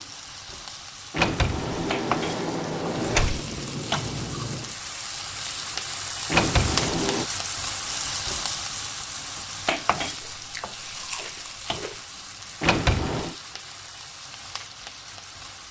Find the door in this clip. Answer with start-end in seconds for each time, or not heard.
1.1-3.4, 6.3-7.2, 12.6-13.3.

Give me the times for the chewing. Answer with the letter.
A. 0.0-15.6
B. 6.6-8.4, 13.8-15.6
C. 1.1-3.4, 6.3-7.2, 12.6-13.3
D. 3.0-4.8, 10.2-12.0
D.